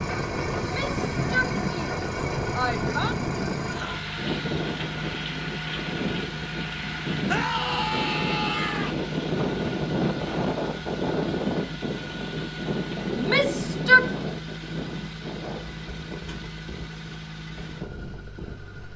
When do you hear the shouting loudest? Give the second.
14 s.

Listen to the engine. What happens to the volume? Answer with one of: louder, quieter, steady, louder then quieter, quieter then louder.
quieter.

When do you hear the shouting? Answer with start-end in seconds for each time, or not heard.
0.6-3.1, 7.2-8.9, 13.2-14.1.